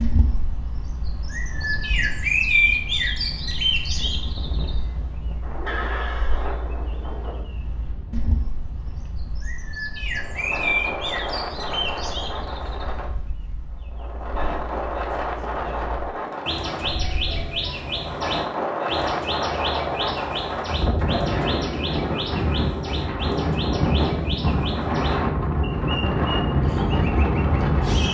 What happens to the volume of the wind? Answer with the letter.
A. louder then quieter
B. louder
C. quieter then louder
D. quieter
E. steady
B.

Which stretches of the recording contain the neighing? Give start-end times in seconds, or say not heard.
5.7-6.6.